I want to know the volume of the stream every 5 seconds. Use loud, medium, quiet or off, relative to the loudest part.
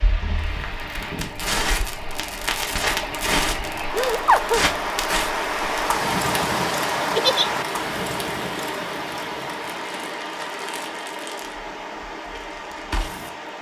medium, loud, medium.